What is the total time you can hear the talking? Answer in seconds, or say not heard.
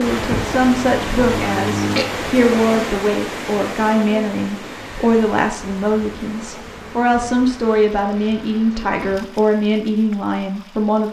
11 s.